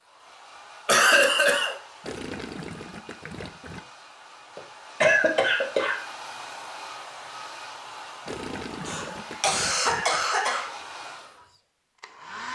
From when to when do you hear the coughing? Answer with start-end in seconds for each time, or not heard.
0.8-1.8, 4.5-6.0, 8.8-10.7.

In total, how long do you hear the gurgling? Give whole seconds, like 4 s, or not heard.
4 s.